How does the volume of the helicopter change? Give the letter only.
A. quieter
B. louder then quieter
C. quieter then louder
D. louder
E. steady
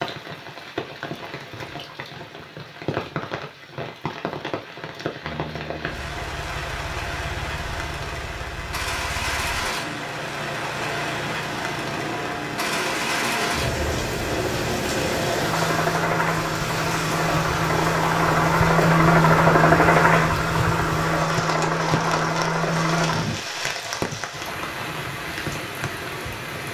D.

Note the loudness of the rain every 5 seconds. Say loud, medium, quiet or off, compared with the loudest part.
medium, loud, loud, loud, loud, loud.